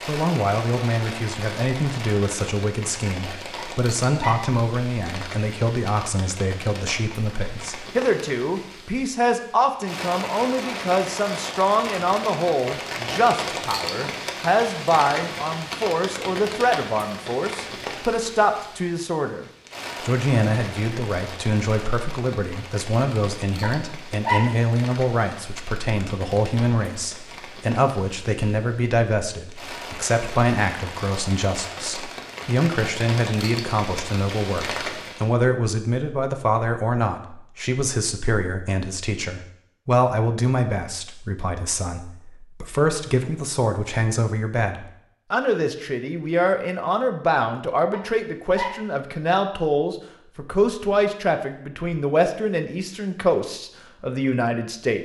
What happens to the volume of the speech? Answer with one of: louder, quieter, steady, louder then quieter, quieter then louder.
steady.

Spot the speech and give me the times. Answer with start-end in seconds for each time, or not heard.
0.1-55.0.